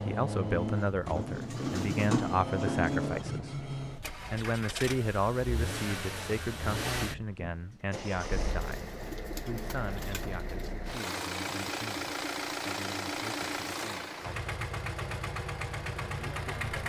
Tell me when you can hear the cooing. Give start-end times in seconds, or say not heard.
0.5-3.2, 8.5-10.9.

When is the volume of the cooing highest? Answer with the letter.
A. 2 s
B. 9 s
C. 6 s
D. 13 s
A.